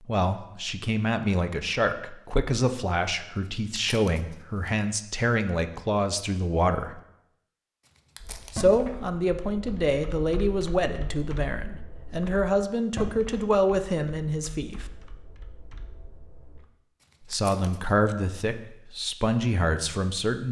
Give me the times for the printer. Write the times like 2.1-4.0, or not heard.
not heard.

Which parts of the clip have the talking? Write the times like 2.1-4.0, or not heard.
0.1-7.0, 8.5-14.8, 17.3-20.4.